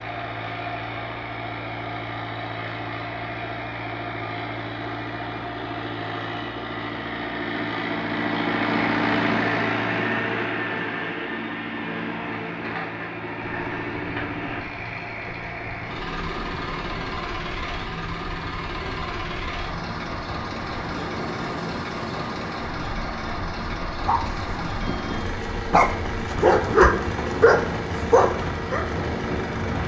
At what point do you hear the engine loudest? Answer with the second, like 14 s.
9 s.